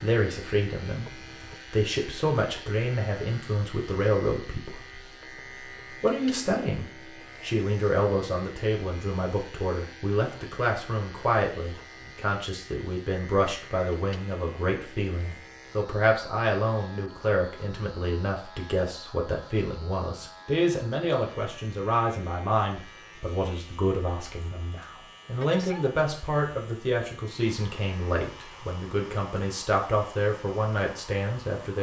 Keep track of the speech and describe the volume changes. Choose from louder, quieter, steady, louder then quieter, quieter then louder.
steady.